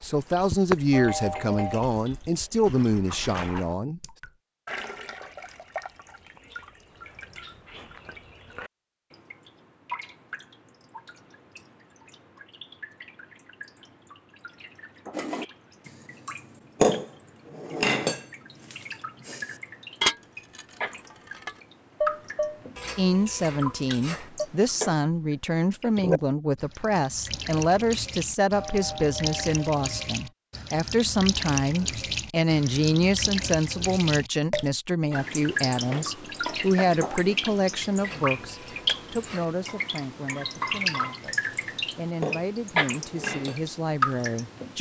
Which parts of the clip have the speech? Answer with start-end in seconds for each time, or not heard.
0.0-4.0, 22.9-44.7.